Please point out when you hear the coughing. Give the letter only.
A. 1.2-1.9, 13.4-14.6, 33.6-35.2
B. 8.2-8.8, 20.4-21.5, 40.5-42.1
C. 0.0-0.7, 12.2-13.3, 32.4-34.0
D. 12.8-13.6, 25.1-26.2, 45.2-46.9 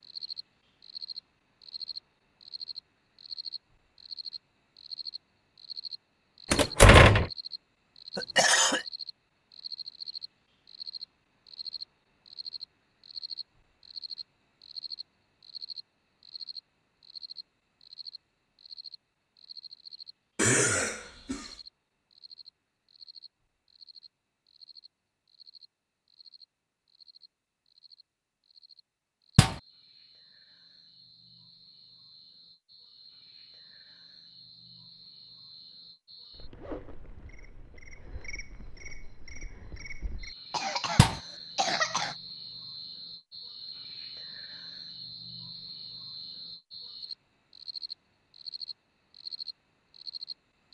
B.